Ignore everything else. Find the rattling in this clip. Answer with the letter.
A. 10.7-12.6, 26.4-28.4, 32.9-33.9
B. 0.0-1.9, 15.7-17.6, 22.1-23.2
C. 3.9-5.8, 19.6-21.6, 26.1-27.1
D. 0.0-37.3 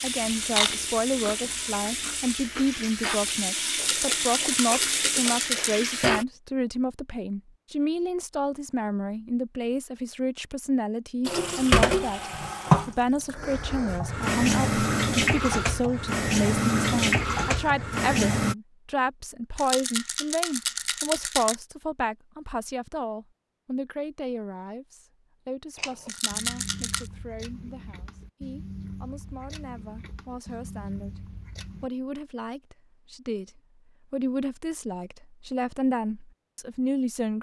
C.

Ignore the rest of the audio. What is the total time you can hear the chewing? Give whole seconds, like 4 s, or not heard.
12 s.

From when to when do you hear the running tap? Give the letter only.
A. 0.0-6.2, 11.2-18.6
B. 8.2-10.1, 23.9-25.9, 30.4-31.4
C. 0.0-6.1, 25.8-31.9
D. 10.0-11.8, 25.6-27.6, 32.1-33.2
A.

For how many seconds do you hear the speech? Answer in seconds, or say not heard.
37 s.